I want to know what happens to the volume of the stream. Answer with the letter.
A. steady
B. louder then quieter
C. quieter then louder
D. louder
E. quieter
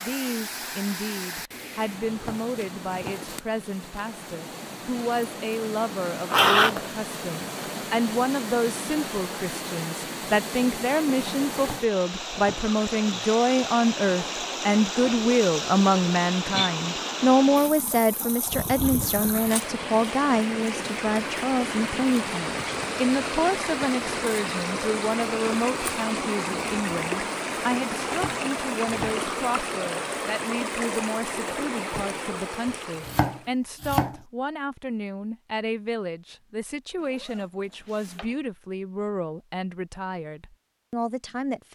D.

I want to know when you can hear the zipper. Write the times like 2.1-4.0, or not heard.
6.3-6.9, 37.0-38.4.